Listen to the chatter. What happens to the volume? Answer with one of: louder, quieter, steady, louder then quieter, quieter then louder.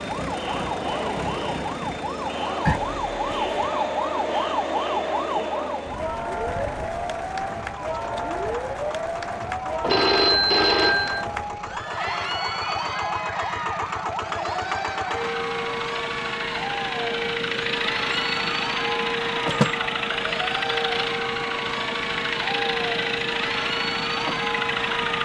steady.